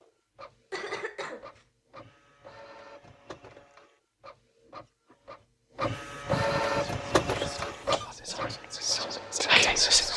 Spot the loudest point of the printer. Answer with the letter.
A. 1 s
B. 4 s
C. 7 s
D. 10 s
C.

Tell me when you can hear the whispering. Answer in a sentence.
You can hear the whispering from 6.7 to 10.1 s.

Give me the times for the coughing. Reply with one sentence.
You can hear the coughing from 0.7 to 1.6 s and from 6.2 to 8.1 s.